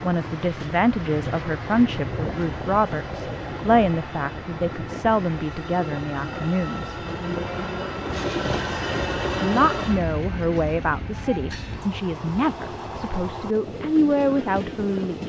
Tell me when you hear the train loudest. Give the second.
9 s.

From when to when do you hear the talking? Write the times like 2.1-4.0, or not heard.
0.0-7.0, 9.3-15.2.